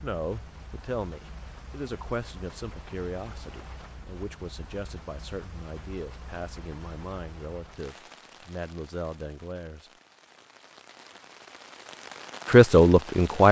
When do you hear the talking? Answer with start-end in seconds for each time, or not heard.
0.0-9.9, 12.4-13.4.